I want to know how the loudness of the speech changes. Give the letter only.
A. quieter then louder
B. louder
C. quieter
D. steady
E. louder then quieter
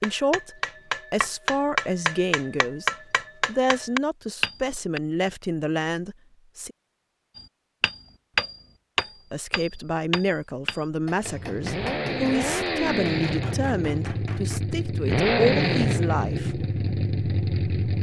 D.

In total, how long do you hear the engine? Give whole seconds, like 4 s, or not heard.
7 s.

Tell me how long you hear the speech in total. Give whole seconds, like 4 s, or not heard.
14 s.